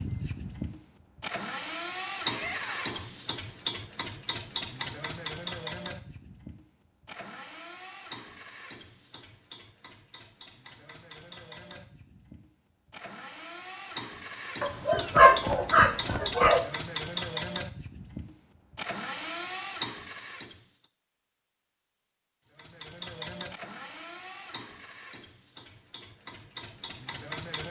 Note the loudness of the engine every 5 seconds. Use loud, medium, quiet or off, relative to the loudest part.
loud, medium, medium, loud, medium, medium.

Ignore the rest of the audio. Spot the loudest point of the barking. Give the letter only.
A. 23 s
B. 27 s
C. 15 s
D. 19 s
C.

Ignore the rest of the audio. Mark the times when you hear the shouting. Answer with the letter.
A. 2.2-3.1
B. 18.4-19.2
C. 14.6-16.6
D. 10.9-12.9
A.